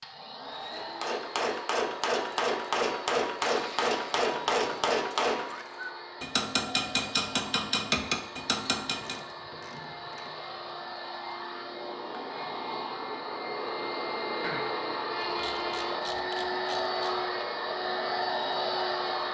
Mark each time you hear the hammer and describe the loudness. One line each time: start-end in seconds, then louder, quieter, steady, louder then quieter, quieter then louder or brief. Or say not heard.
0.7-9.2 steady.